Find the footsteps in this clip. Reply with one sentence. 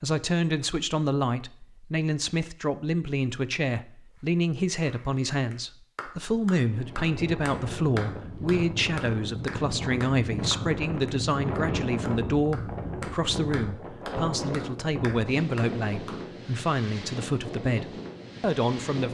You can't hear the footsteps here.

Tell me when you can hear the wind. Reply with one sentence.
The wind can be heard from 6.6 to 19.0 s.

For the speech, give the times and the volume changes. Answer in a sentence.
You can hear the speech from 0.0 to 19.0 s, at a steady volume.